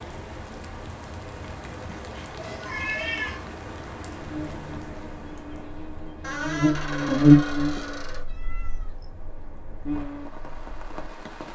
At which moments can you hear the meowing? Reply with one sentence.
The meowing can be heard from 1.9 to 3.5 s and from 7.0 to 9.1 s.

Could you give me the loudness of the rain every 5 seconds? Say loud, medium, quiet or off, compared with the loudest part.
loud, medium, loud.